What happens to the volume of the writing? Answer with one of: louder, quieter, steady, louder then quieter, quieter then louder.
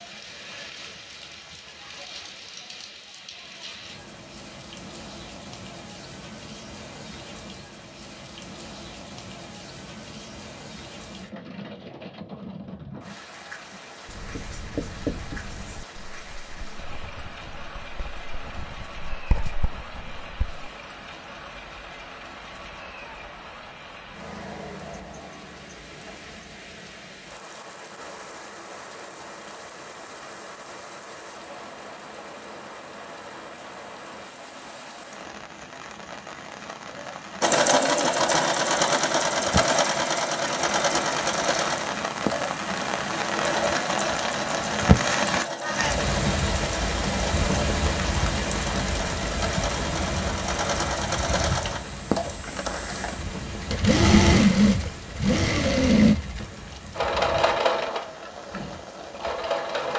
quieter then louder.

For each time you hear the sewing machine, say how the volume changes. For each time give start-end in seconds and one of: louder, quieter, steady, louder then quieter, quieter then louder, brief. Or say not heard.
37.4-59.9 quieter then louder.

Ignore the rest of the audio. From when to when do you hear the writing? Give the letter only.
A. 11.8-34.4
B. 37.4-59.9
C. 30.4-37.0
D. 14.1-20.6
D.